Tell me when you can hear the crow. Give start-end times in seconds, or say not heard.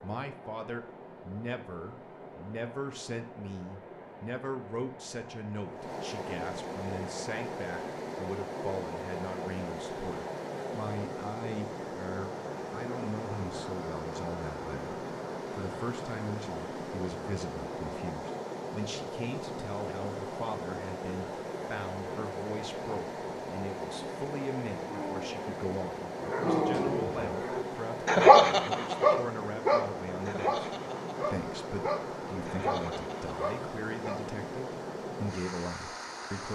not heard.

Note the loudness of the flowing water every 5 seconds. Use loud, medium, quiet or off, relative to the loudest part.
medium, loud, loud, loud, loud, loud, loud, loud.